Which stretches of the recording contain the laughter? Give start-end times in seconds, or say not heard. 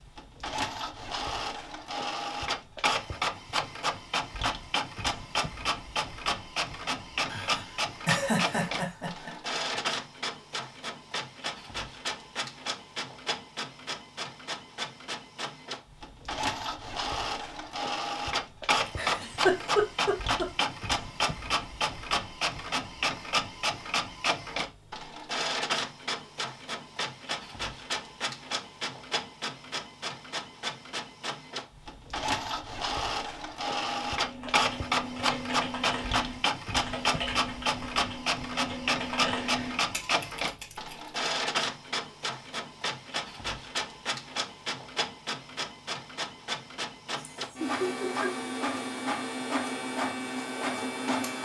7.3-9.3, 18.9-20.4, 47.1-48.5.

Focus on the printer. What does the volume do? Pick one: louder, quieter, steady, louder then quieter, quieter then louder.
steady.